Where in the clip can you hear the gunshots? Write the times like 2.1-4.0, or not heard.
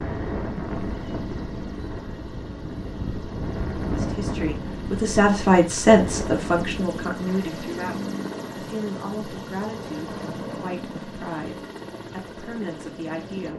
not heard.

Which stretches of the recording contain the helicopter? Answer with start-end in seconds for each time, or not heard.
0.0-13.5.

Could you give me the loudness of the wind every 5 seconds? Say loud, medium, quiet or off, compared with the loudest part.
loud, loud, off.